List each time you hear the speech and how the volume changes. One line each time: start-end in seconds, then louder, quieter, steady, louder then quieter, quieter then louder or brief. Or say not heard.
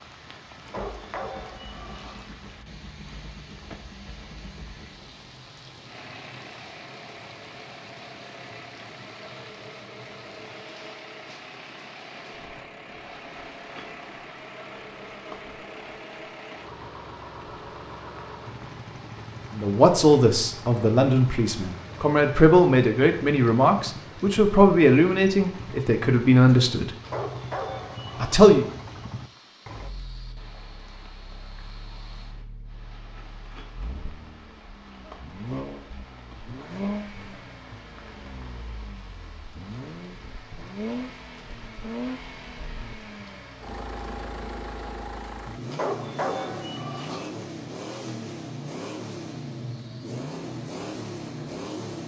19.6-26.9 steady
28.2-28.6 brief.